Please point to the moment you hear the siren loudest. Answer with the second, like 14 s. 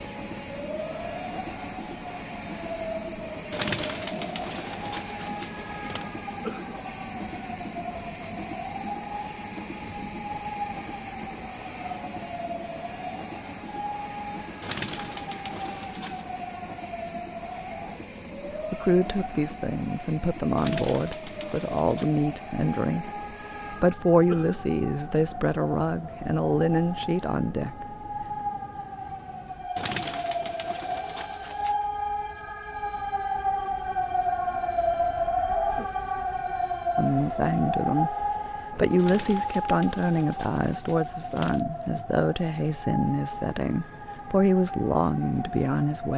35 s.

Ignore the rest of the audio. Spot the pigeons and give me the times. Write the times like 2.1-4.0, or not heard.
3.5-6.0, 14.6-16.2, 20.6-22.2, 29.8-31.8, 39.0-41.6.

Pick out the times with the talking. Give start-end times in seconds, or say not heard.
18.7-27.9, 37.0-46.1.